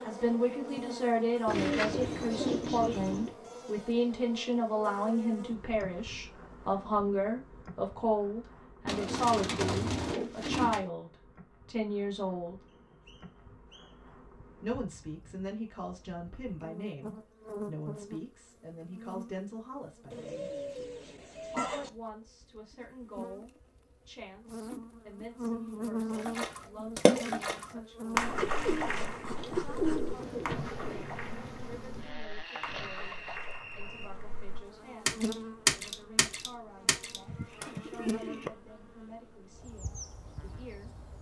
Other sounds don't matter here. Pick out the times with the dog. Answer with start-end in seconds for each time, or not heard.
not heard.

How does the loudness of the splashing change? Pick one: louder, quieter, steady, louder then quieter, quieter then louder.
quieter then louder.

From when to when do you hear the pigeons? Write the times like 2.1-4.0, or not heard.
1.4-3.4, 8.8-10.8, 20.1-21.9, 28.1-31.1, 37.2-38.5.